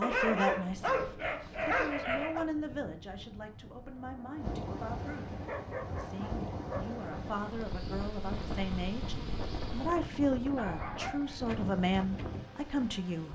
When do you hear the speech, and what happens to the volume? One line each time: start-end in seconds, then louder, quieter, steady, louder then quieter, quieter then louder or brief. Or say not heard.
0.0-13.2 quieter then louder.